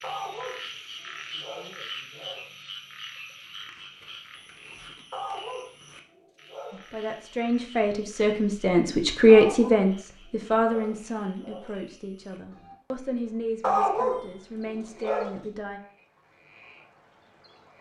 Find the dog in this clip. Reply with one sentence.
The dog can be heard from 0.0 to 2.5 s, from 5.1 to 6.8 s, from 9.2 to 11.7 s and from 13.6 to 15.3 s.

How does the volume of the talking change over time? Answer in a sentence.
The loudness of the talking goes up, then down.